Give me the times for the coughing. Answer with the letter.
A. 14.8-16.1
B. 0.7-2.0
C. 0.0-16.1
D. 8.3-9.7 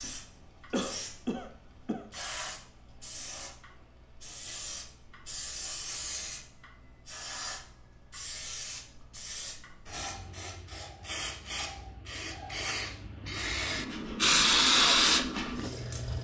B.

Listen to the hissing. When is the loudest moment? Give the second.
15 s.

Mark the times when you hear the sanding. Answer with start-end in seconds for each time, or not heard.
not heard.